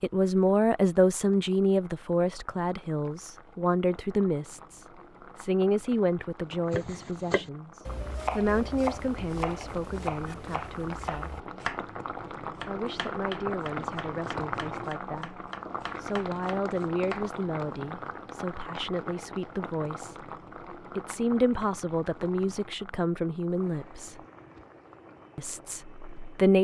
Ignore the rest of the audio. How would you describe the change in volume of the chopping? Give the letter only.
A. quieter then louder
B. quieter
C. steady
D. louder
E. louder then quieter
B.